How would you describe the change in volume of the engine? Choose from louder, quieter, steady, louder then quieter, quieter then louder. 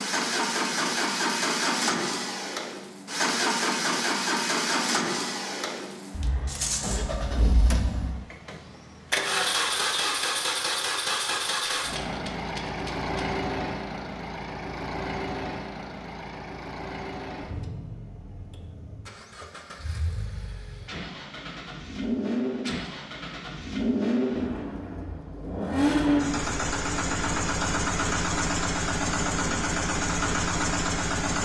quieter then louder.